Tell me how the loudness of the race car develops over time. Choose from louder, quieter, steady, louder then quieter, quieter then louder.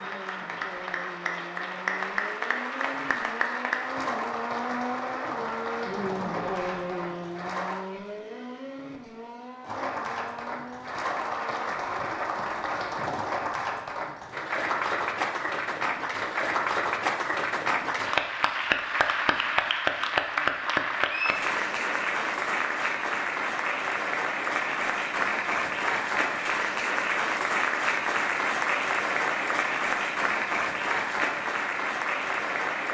louder then quieter.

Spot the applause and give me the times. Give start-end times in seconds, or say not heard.
0.0-7.8, 9.6-32.8.